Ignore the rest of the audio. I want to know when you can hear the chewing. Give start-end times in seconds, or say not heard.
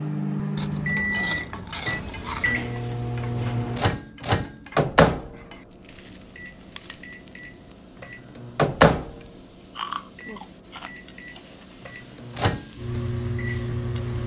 0.6-2.6, 5.7-7.0, 9.8-11.7.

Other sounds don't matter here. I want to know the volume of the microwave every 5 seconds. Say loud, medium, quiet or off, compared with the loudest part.
loud, loud, medium.